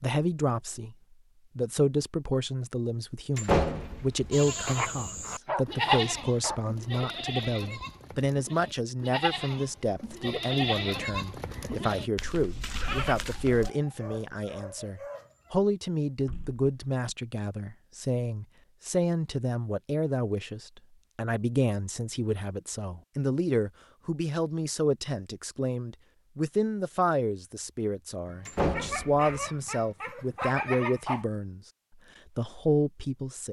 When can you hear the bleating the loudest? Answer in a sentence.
The volume of the bleating peaks at 6 seconds.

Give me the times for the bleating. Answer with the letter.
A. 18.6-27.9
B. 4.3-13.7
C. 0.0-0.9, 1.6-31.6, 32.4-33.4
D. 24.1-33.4
B.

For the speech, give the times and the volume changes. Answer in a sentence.
The speech can be heard briefly from 0.0 to 0.9 s; from 1.6 to 31.6 s, at a steady volume; and briefly from 32.4 to 33.4 s.